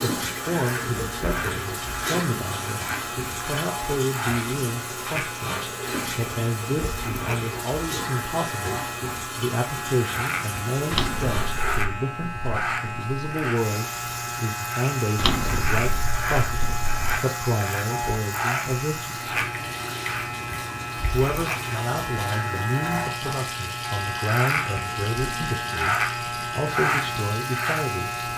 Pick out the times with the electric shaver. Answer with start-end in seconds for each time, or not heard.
0.0-28.3.